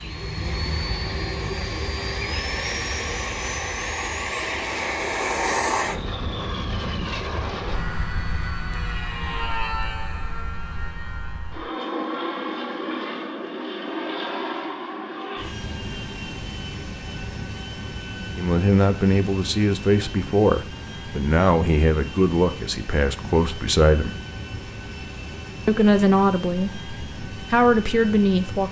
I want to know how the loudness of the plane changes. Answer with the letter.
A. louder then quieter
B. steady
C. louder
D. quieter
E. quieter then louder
D.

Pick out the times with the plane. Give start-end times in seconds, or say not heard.
0.0-28.6.